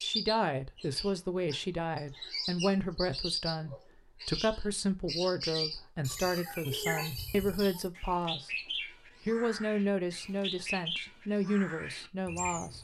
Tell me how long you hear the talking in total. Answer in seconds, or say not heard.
12 s.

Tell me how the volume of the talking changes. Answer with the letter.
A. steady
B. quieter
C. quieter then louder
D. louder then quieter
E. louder
A.